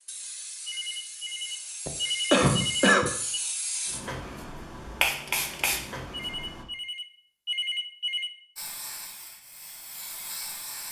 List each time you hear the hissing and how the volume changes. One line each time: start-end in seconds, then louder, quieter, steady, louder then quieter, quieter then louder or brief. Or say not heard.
0.0-6.7 louder
8.6-10.8 brief.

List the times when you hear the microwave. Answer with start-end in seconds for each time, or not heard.
not heard.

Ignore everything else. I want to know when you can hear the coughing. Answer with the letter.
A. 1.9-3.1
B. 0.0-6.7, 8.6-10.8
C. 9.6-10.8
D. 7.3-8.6
A.